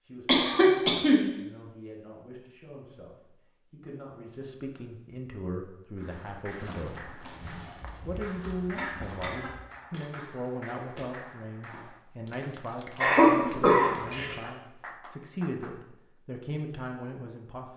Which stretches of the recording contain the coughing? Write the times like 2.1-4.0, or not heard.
0.2-1.2, 7.7-9.6, 13.0-14.3.